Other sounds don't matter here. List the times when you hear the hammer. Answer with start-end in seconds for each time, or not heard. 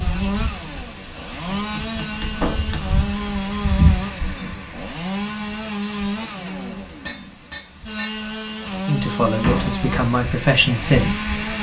1.6-3.0, 6.3-8.2.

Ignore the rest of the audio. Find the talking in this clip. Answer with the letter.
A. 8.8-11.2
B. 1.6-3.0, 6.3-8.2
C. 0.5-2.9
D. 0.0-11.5
A.